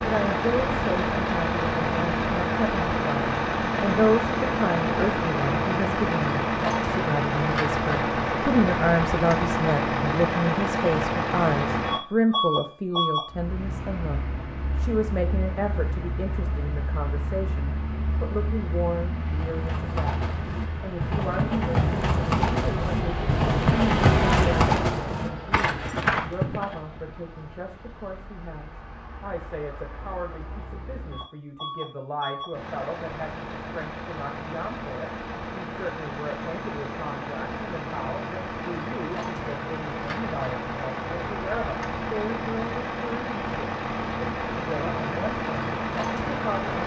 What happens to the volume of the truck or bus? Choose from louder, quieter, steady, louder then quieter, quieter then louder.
quieter then louder.